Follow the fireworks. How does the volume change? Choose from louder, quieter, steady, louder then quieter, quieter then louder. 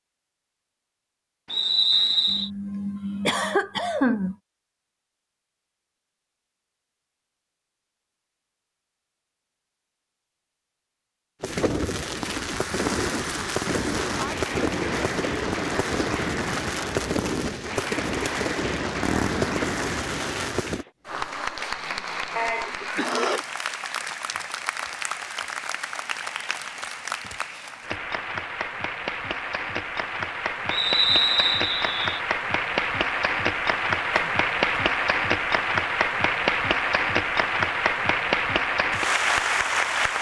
steady.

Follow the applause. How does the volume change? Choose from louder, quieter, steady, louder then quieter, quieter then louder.
louder.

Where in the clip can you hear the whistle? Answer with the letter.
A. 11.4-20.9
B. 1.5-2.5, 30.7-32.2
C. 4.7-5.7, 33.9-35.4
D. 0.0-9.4
B.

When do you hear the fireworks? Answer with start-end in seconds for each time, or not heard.
11.4-20.9.